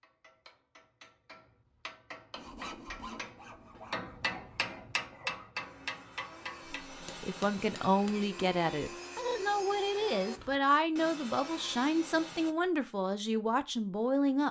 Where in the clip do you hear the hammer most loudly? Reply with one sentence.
The volume of the hammer peaks at 5 seconds.